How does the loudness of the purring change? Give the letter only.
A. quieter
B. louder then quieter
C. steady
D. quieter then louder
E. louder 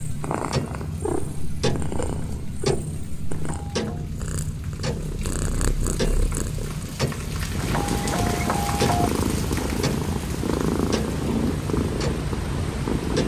D.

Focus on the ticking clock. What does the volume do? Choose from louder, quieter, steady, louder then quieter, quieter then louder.
steady.